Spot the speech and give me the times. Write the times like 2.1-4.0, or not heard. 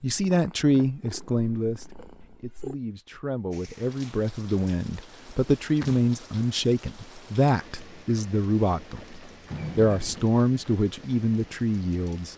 0.0-12.3.